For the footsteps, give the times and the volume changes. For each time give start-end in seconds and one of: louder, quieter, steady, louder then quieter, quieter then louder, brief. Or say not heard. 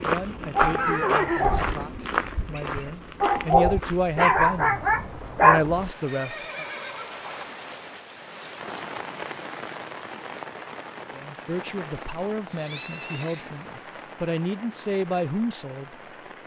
0.0-4.2 quieter.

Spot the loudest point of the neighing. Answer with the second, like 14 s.
1 s.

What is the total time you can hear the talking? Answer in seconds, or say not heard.
11 s.